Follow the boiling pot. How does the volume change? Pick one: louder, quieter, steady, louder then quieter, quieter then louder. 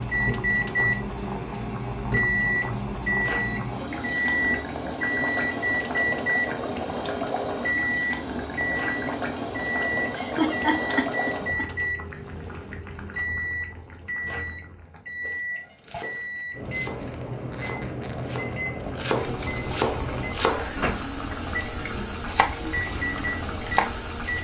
quieter then louder.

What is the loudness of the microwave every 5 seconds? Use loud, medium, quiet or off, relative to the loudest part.
loud, loud, medium, medium, medium.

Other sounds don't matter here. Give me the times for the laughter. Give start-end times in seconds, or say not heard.
10.2-11.7.